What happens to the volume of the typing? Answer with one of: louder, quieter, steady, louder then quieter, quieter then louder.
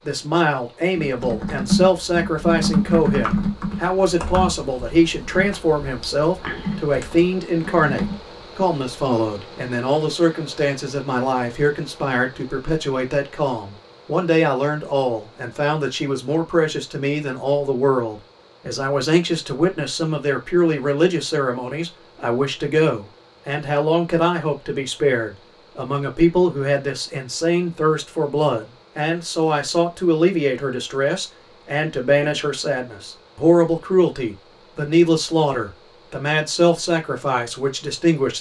quieter.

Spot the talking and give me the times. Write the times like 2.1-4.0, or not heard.
0.0-38.3.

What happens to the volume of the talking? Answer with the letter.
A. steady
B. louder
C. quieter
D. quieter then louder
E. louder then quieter
A.